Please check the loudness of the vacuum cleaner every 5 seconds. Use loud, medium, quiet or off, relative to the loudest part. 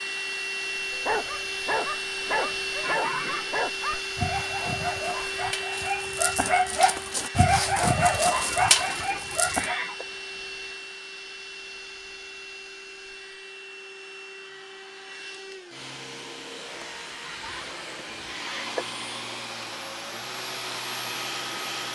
loud, loud, medium, medium, loud.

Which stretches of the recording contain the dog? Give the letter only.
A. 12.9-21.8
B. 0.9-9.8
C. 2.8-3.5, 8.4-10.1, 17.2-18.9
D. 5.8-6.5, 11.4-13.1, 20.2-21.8
B.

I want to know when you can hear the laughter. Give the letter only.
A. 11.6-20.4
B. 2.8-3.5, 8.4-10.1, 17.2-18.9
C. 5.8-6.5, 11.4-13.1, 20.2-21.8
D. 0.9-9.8
B.